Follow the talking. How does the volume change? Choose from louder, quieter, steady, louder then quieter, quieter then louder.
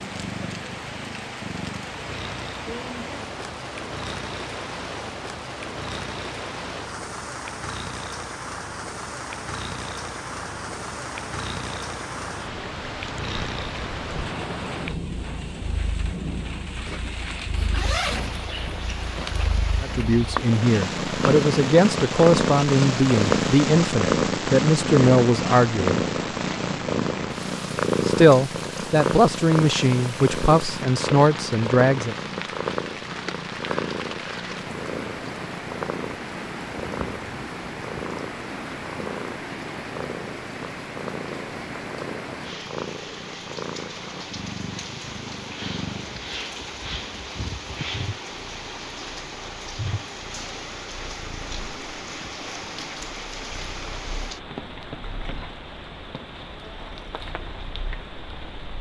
steady.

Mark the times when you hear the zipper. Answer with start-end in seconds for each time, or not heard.
16.9-19.4.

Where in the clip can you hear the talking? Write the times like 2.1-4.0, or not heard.
19.8-26.0, 28.1-32.1.